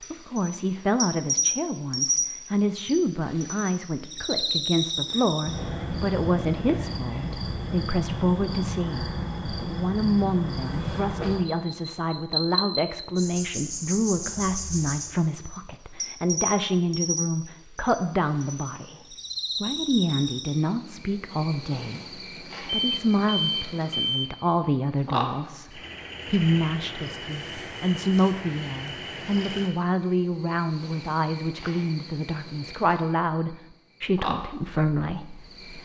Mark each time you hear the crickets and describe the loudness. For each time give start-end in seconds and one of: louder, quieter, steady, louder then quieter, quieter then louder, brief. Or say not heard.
0.0-35.8 quieter.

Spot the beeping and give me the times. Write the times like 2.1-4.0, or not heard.
22.7-24.4.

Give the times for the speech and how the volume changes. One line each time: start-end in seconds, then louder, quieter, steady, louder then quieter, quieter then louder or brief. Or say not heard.
0.1-35.8 steady.